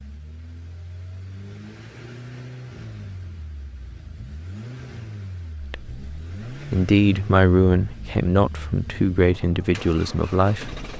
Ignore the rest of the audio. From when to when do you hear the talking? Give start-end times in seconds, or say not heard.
5.6-10.8.